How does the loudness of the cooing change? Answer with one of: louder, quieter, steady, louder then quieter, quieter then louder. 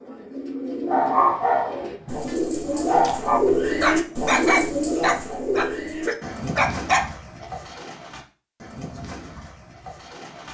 louder then quieter.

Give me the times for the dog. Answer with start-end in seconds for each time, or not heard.
0.8-7.5.